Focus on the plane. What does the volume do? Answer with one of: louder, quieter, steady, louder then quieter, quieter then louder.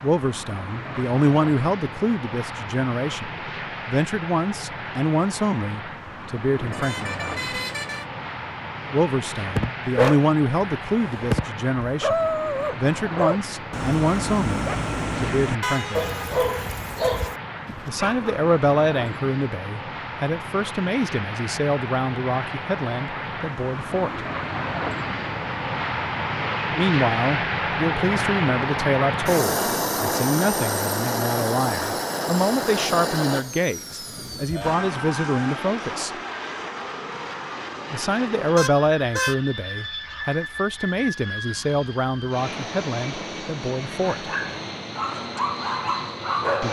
louder then quieter.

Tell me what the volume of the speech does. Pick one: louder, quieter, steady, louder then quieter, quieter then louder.
steady.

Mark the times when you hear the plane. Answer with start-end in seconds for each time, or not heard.
0.0-46.6.